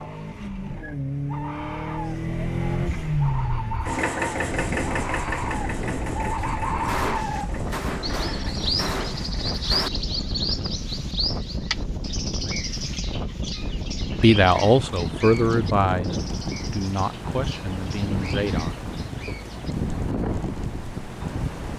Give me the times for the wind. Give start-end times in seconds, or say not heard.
4.3-21.7.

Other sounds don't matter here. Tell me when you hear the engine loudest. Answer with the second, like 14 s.
3 s.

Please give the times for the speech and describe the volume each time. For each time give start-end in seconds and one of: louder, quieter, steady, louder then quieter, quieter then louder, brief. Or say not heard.
14.2-19.5 quieter.